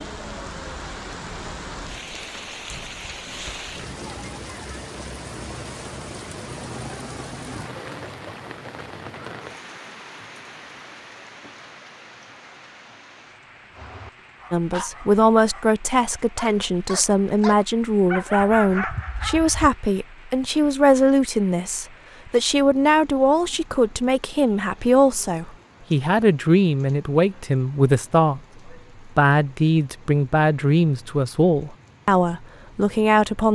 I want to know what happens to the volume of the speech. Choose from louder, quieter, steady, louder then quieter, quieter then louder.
steady.